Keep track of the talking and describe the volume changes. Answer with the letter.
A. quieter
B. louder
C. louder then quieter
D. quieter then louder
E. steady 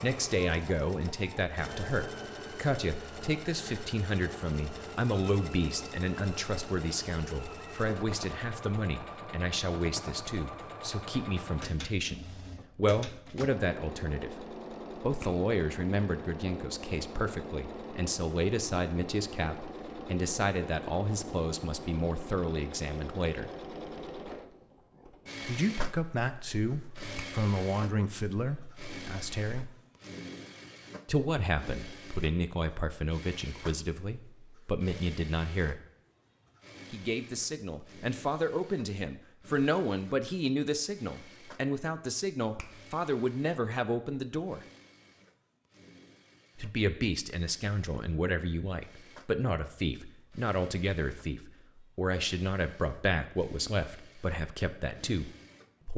E.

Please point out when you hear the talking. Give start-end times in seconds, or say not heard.
0.0-23.5, 25.4-29.7, 31.1-35.8, 36.9-44.6, 46.5-55.9.